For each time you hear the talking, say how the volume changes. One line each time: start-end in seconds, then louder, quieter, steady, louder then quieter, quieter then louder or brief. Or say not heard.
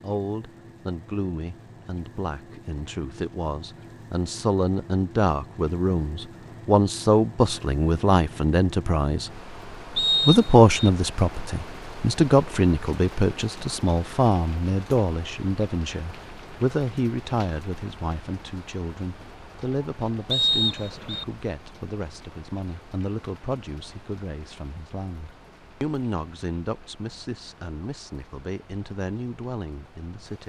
0.0-9.3 louder
10.2-30.4 quieter.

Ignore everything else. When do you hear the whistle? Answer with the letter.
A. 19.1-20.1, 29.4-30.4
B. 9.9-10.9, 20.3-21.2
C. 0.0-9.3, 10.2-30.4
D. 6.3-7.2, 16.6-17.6
B.